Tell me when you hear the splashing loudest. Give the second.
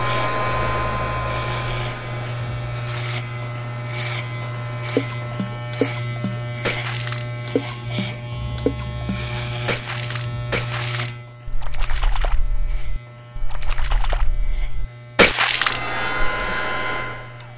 15 s.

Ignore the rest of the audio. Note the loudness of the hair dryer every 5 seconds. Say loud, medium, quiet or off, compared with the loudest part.
loud, off, off, loud.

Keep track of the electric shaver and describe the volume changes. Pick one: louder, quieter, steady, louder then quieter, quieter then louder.
quieter.